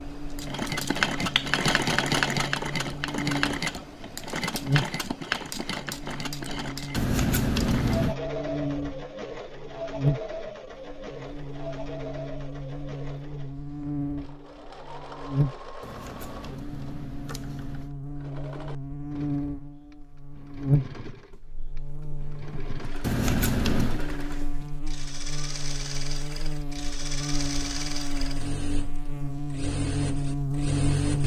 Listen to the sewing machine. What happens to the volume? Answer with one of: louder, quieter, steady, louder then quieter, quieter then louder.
quieter then louder.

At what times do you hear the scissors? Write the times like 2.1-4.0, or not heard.
7.0-8.2, 15.8-17.9, 23.0-24.0.